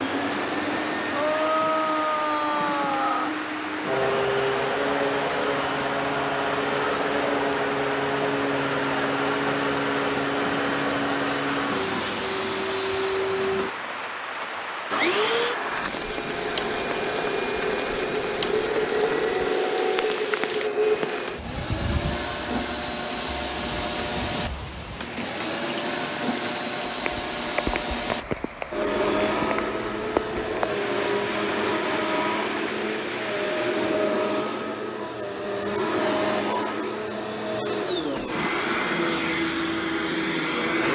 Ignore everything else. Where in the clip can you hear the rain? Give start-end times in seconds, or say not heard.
0.0-34.1.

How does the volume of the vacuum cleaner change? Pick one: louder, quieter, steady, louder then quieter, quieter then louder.
steady.